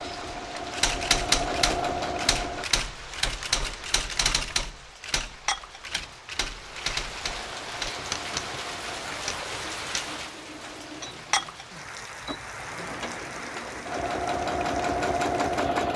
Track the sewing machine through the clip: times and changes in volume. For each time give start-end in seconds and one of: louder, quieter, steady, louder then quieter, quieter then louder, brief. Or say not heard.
0.0-2.6 brief
7.2-15.9 louder.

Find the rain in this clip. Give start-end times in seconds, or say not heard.
0.0-15.9.